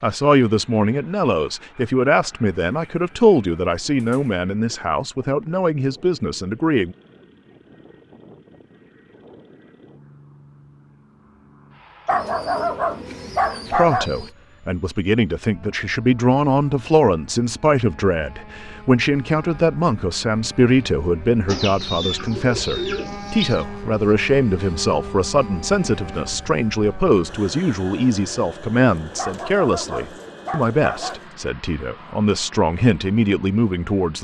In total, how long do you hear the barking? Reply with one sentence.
The barking can be heard for 4 seconds in total.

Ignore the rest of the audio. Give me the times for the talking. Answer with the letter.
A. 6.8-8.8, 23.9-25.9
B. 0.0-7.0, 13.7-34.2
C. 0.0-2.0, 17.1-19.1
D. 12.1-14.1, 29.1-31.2
B.